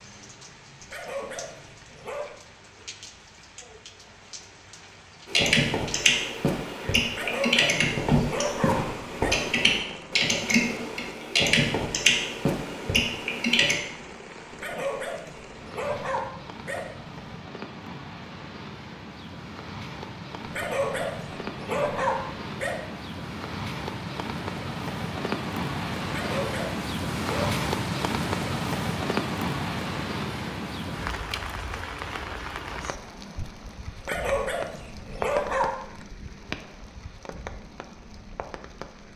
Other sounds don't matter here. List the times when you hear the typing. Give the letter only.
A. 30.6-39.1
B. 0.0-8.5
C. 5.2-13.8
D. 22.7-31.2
C.